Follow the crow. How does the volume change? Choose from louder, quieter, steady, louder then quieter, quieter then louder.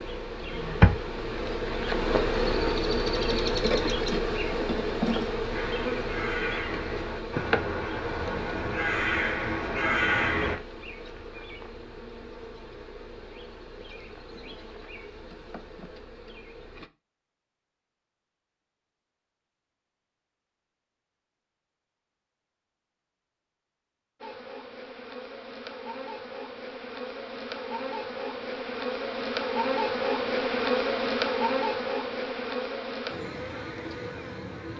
louder.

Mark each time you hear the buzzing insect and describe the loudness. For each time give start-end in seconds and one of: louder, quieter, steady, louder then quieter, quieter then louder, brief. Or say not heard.
0.0-16.9 quieter
24.2-34.7 louder then quieter.